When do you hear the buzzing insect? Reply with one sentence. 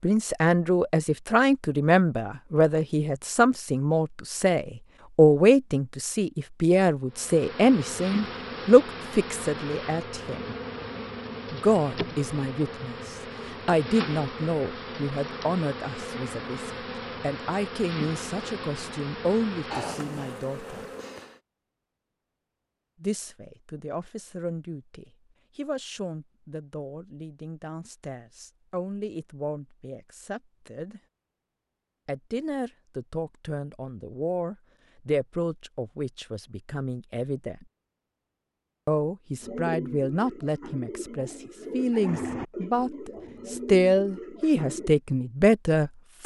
The buzzing insect can be heard from 7.1 to 21.4 s.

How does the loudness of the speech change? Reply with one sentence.
The loudness of the speech goes down, then up.